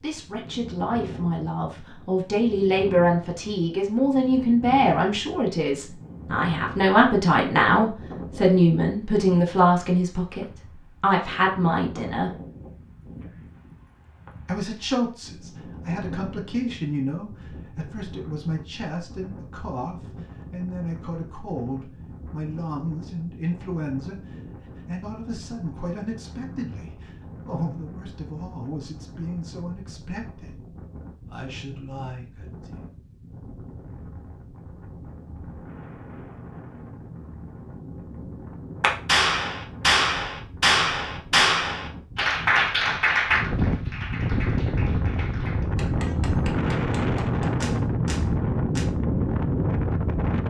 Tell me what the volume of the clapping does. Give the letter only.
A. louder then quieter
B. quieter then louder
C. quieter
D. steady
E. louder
C.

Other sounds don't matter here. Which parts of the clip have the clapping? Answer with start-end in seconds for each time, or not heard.
38.8-48.9.